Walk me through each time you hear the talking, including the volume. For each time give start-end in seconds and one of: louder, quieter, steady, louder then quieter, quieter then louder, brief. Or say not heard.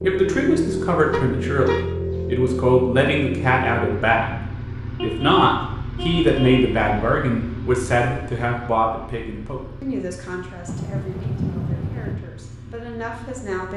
0.0-13.7 quieter.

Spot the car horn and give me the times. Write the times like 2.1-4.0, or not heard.
1.1-2.2, 5.0-6.8, 10.7-12.2.